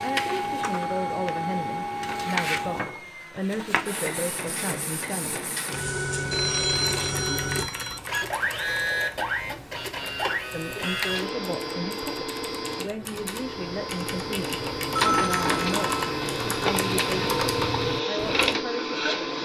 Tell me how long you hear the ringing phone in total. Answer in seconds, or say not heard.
3 s.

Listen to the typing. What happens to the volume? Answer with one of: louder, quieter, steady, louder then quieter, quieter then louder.
quieter then louder.